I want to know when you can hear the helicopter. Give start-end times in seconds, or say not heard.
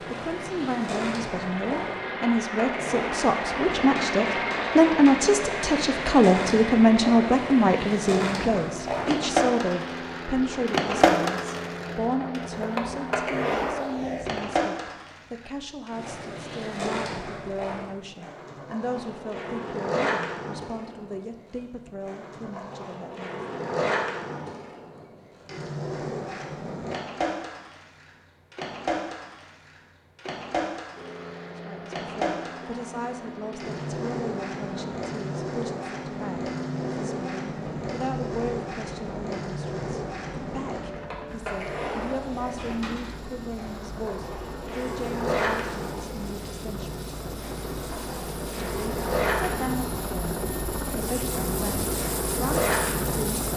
0.0-13.3, 30.9-53.5.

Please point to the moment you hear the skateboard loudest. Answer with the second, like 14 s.
11 s.